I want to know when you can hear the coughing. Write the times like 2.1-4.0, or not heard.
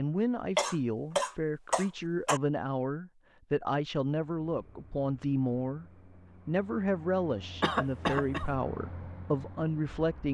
0.6-2.4, 7.6-8.5.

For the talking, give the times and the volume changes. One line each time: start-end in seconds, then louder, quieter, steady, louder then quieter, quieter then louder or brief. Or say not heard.
0.0-10.2 steady.